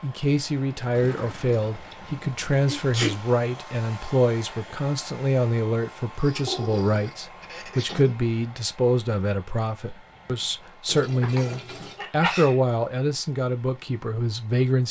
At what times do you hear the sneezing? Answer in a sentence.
You can hear the sneezing from 2.6 to 3.1 s, from 7.4 to 8.2 s and from 11.2 to 12.6 s.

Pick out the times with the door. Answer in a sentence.
You can't hear the door here.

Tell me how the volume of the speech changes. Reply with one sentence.
The volume of the speech stays about the same.